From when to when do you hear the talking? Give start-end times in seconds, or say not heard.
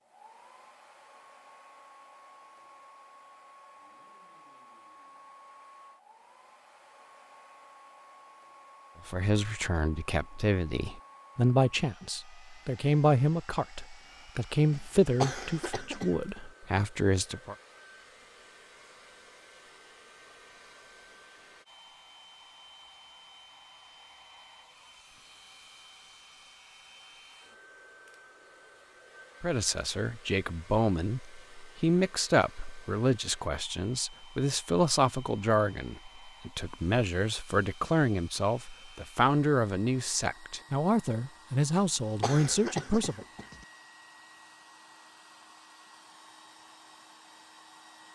9.1-17.6, 29.4-43.2.